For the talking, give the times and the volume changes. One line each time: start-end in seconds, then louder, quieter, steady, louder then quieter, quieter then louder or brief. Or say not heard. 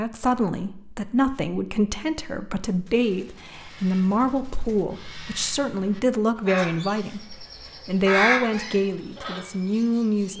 0.0-10.3 steady.